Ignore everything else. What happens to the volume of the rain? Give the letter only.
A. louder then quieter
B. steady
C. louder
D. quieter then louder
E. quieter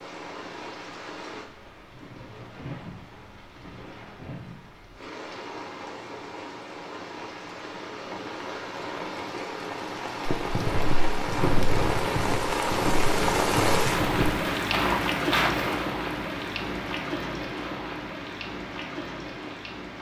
A.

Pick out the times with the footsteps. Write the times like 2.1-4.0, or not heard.
10.2-15.8.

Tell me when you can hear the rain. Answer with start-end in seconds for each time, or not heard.
0.0-19.9.